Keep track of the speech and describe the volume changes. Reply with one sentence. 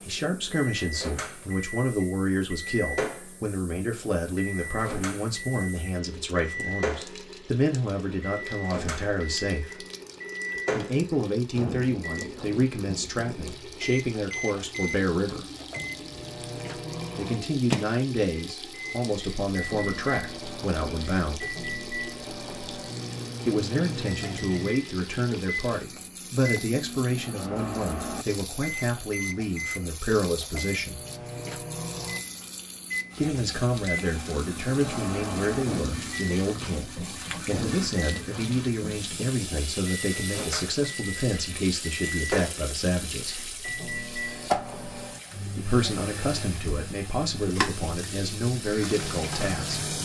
The loudness of the speech stays about the same.